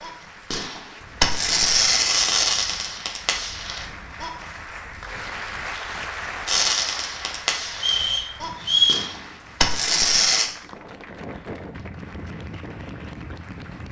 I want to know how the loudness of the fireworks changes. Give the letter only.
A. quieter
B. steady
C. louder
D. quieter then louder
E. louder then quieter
D.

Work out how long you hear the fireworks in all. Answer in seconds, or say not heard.
8 s.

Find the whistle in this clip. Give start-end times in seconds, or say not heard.
7.8-9.1.